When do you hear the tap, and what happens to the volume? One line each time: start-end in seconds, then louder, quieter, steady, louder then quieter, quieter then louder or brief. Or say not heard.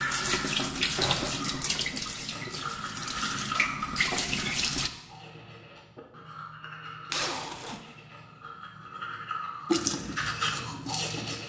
0.0-4.9 quieter then louder
9.7-11.4 brief.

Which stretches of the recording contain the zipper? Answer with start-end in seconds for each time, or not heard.
0.9-1.5, 7.1-7.8.